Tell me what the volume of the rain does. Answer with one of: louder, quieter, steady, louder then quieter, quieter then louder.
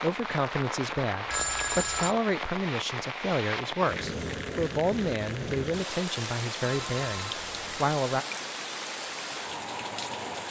steady.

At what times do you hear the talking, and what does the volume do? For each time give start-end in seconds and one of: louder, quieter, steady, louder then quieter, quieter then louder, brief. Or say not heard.
0.0-8.2 steady.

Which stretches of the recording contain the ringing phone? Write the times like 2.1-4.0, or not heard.
1.3-2.1, 6.6-7.9.